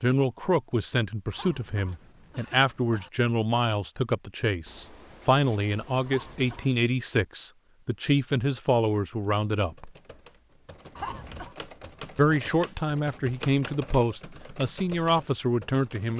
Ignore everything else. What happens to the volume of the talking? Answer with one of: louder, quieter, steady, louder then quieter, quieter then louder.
steady.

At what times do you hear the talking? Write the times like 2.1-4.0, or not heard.
0.0-9.9, 12.2-16.1.